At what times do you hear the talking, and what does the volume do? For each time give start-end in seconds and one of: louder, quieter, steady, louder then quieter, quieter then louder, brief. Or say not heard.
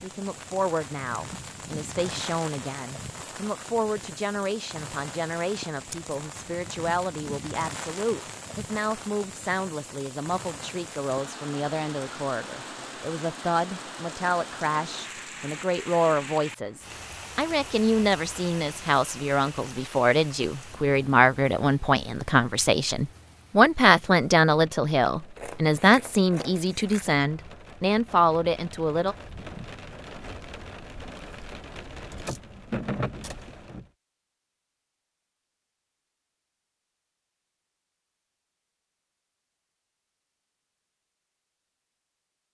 0.0-29.1 louder.